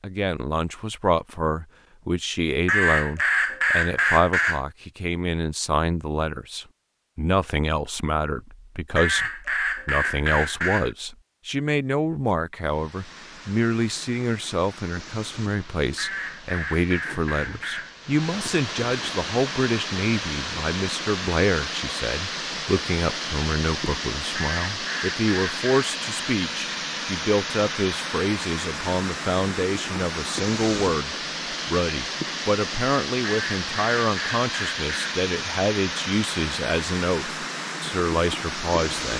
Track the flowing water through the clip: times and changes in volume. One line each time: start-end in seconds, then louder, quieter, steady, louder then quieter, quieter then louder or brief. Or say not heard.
12.6-39.1 louder.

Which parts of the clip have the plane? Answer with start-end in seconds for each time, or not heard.
not heard.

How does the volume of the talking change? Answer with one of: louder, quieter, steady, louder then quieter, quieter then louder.
steady.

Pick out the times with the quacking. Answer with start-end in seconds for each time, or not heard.
2.6-4.6, 8.9-10.9, 15.9-17.9, 24.4-25.9, 33.2-35.1.